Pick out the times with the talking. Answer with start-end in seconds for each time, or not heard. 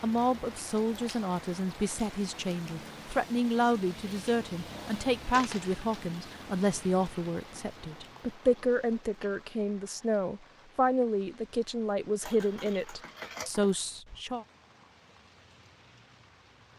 0.0-14.4.